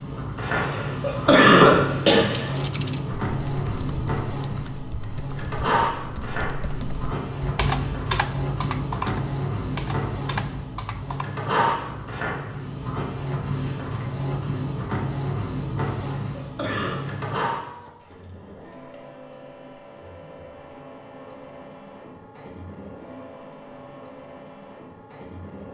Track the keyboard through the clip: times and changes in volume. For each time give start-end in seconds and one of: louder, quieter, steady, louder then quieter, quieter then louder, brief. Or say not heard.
2.3-11.2 louder then quieter.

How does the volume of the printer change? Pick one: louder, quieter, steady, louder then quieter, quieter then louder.
quieter.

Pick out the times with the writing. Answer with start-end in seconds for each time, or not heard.
not heard.